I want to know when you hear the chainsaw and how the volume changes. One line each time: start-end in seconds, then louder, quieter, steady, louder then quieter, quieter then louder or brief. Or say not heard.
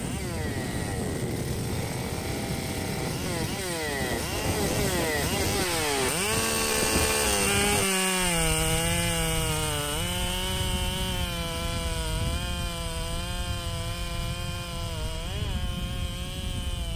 0.0-16.9 louder then quieter.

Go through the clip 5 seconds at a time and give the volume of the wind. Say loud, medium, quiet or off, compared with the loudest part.
loud, loud, medium, medium.